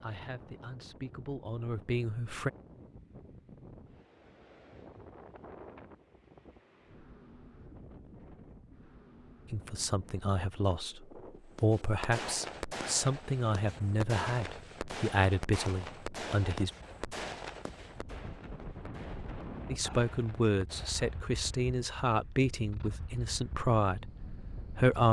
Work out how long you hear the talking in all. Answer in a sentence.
You can hear the talking for 15 seconds altogether.